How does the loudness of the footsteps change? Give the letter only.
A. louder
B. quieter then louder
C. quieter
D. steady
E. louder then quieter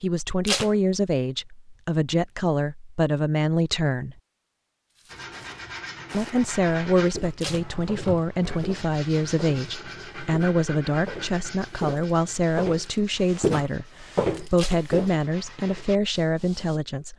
A.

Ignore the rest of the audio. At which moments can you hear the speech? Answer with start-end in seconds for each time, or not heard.
0.0-4.2, 6.1-17.1.